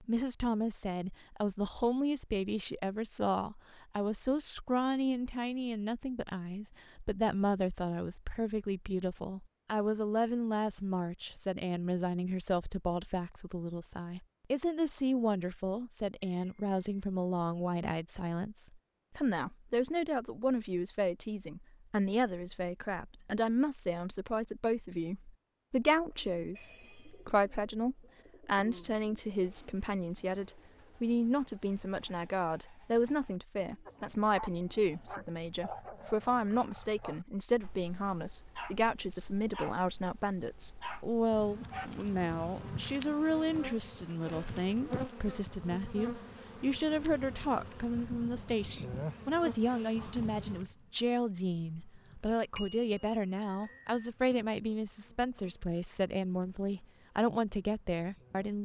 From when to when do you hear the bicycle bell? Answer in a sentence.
You can hear the bicycle bell from 16.2 to 17.1 s and from 52.5 to 54.1 s.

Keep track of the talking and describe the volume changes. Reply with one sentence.
The volume of the talking stays about the same.